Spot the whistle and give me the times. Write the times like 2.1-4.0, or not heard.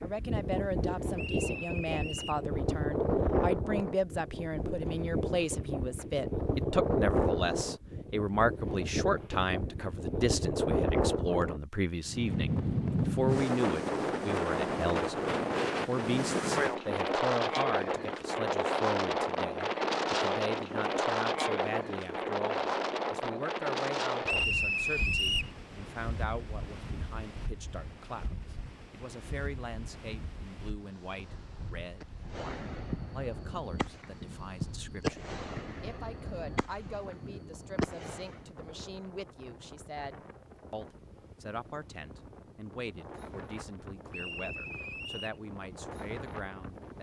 1.1-2.5, 24.2-25.6, 44.1-45.4.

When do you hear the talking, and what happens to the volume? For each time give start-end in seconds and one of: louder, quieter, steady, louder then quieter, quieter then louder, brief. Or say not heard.
0.0-46.9 quieter.